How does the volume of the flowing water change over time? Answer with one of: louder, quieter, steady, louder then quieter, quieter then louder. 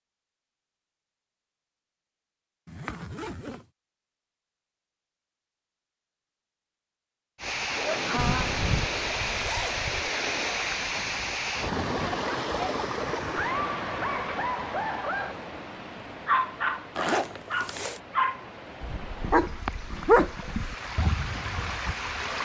quieter then louder.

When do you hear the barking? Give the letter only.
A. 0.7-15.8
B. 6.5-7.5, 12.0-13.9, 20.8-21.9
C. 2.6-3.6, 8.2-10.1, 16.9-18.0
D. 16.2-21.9
D.